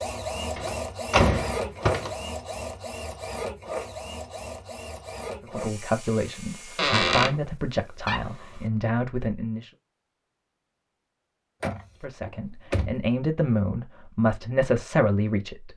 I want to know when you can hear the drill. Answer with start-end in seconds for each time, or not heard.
0.0-6.8.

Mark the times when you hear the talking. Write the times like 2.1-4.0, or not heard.
5.4-9.7, 12.0-15.7.